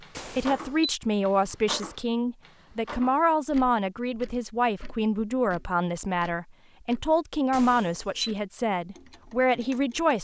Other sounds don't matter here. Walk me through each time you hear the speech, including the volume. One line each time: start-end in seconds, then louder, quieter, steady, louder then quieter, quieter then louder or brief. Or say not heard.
0.3-10.2 steady.